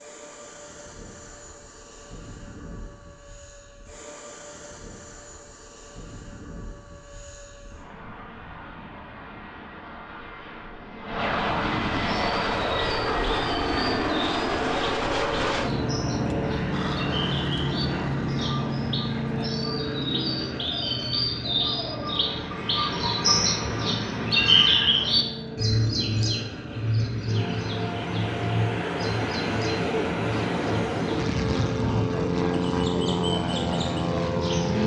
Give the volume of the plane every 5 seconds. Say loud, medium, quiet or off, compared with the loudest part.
quiet, quiet, loud, loud, medium, medium, loud.